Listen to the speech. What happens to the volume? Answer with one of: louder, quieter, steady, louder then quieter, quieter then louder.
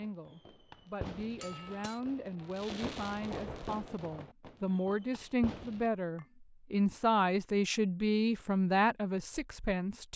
louder.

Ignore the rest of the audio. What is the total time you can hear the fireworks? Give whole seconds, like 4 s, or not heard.
6 s.